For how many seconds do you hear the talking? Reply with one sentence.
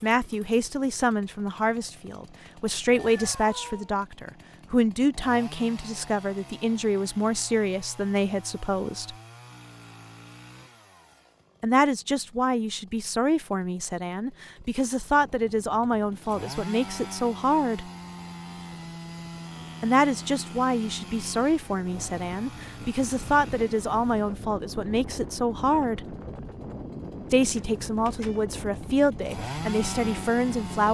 The talking can be heard for 25 seconds in total.